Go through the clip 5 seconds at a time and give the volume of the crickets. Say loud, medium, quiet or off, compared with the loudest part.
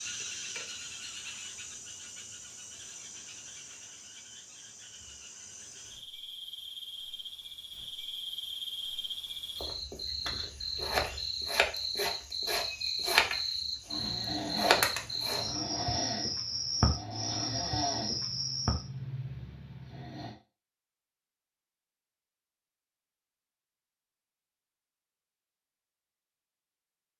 quiet, medium, loud, loud, off, off.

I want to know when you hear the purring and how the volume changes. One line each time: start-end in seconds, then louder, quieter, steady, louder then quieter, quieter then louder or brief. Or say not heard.
not heard.